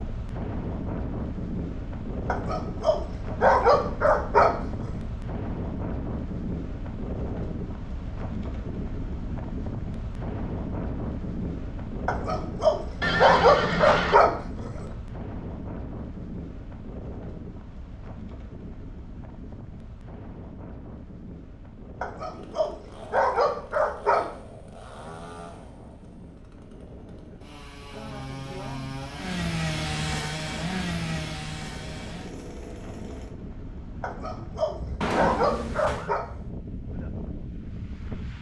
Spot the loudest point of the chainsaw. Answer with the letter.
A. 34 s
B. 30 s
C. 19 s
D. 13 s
B.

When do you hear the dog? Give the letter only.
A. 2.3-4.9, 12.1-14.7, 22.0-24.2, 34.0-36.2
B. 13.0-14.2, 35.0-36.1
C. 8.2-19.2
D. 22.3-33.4
A.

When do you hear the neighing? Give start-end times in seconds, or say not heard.
13.0-14.2, 35.0-36.1.